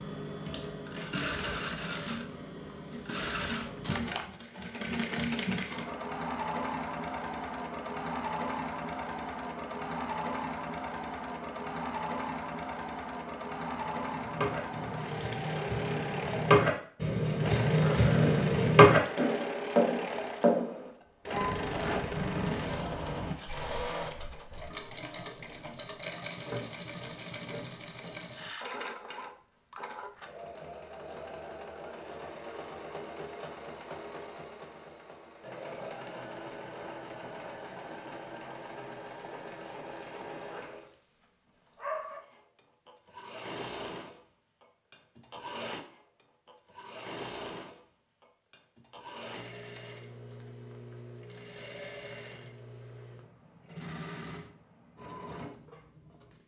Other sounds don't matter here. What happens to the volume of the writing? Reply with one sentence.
The volume of the writing goes up, then down.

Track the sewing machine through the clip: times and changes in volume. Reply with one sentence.
The sewing machine can be heard from 0.0 to 56.4 s, getting quieter.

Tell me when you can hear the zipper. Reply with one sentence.
You can hear the zipper from 21.7 to 22.9 s.